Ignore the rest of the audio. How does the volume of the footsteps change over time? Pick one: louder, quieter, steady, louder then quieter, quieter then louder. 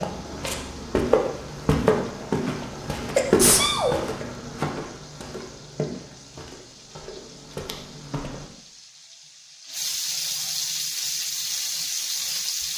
quieter.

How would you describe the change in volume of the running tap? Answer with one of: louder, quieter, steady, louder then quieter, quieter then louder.
louder.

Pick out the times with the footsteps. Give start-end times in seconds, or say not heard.
0.0-8.4.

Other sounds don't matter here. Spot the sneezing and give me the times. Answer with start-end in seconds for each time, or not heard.
3.1-4.0.